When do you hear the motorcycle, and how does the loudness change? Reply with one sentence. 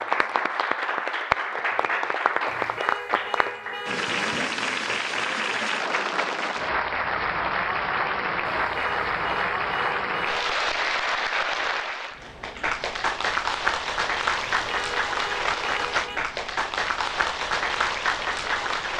The motorcycle can't be heard in this clip.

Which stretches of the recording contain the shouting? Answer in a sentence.
The shouting can't be heard in this clip.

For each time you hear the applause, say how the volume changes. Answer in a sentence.
The applause can be heard from 0.0 to 18.9 s, at a steady volume.